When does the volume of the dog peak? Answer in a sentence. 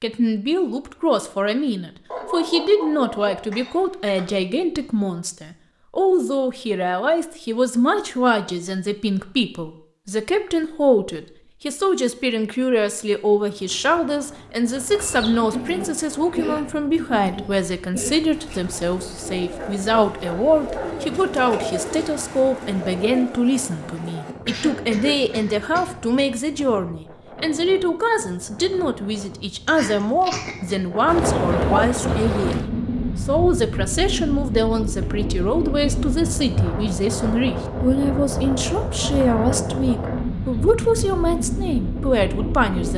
The loudest moment of the dog is at 32 seconds.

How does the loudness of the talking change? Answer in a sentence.
The loudness of the talking stays about the same.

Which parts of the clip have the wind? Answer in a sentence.
The wind can be heard from 13.4 to 42.9 s.